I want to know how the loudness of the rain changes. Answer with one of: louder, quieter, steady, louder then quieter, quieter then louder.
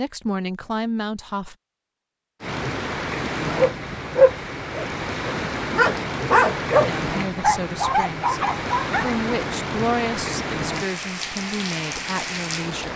steady.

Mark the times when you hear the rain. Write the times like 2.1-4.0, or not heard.
2.4-12.9.